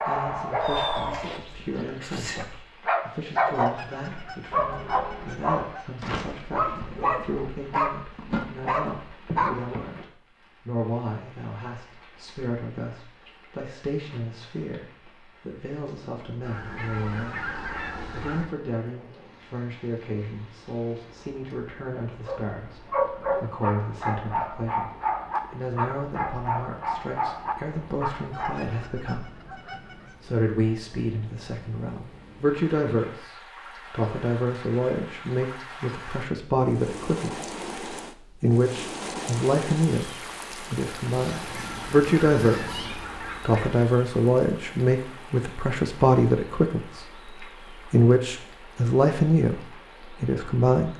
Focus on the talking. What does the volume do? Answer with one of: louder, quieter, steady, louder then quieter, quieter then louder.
louder.